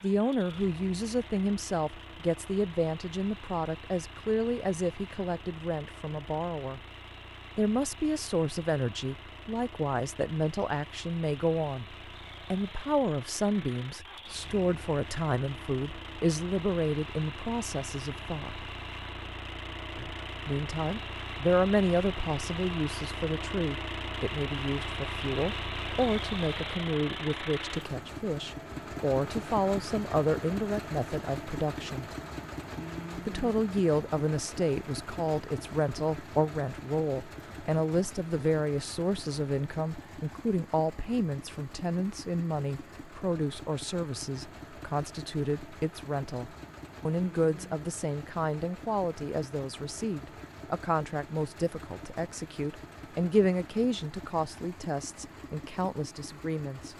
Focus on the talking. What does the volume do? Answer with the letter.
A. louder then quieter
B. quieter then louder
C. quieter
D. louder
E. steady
E.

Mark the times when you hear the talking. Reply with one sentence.
You can hear the talking from 0.0 to 6.8 s, from 7.5 to 11.9 s, from 12.5 to 18.7 s, from 20.4 to 32.1 s and from 33.1 to 56.9 s.